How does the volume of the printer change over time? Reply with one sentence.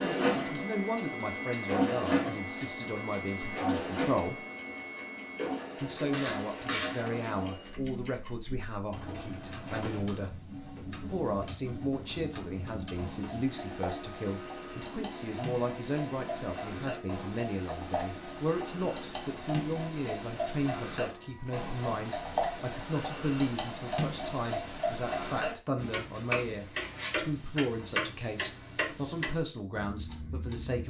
The volume of the printer goes down.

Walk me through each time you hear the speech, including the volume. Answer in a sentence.
You can hear the speech from 0.0 to 4.4 s, getting quieter; and from 5.8 to 30.8 s, at a steady volume.